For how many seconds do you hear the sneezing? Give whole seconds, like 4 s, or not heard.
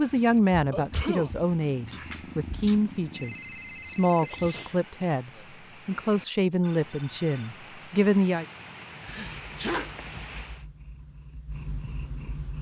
3 s.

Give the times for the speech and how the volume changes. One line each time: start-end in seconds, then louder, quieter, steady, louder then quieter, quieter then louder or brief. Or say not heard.
0.0-8.4 steady.